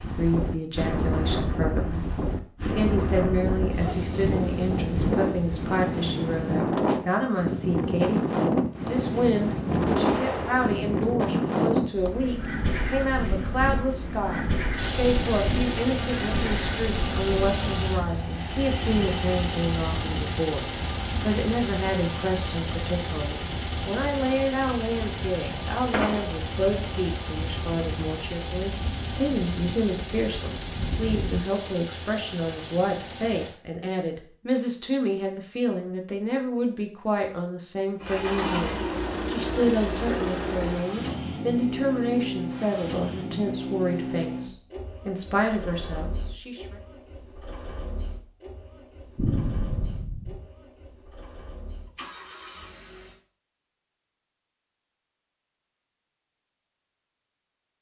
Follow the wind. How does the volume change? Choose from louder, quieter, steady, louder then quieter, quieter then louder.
quieter.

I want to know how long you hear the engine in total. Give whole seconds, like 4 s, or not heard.
34 s.